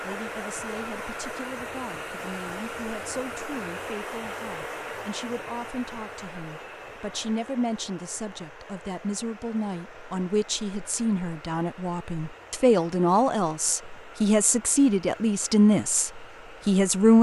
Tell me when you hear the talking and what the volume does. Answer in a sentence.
You can hear the talking from 0.0 to 17.1 s, getting louder.